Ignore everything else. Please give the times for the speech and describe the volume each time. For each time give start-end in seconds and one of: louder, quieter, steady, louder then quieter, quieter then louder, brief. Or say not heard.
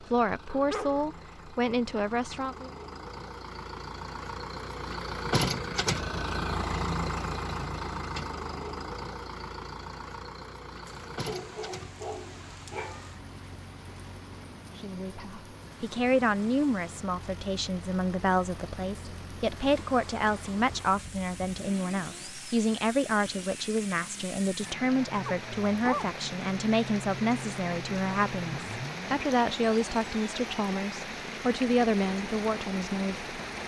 0.0-2.7 brief
14.8-33.3 steady.